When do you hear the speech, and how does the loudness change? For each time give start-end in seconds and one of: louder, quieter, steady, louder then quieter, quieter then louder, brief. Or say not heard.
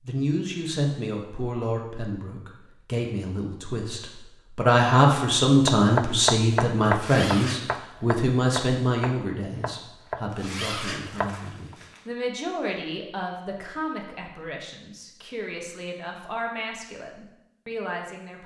0.0-18.4 louder then quieter.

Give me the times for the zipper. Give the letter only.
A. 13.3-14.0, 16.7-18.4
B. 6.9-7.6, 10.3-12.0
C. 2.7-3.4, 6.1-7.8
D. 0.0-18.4
B.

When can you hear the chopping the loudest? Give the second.
6 s.